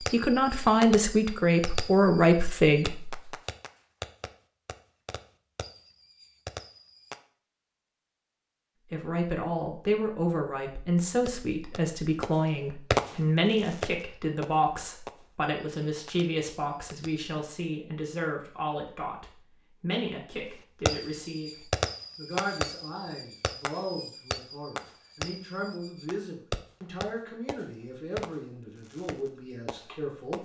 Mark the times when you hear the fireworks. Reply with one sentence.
You can hear the fireworks from 0.0 to 7.2 s, from 11.2 to 17.3 s and from 20.9 to 30.3 s.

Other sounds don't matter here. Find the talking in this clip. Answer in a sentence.
You can hear the talking from 0.0 to 3.2 s and from 8.9 to 30.3 s.